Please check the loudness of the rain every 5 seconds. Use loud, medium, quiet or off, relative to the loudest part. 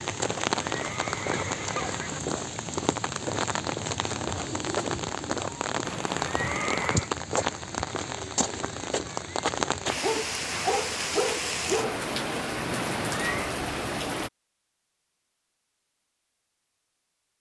loud, loud, loud, off.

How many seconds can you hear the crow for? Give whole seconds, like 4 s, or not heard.
not heard.